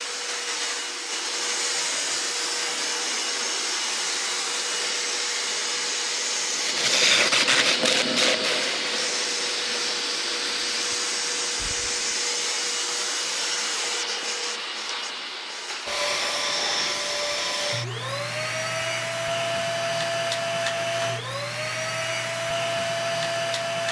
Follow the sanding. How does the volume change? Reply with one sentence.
The volume of the sanding goes down.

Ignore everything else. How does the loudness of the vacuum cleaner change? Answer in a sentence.
The loudness of the vacuum cleaner stays about the same.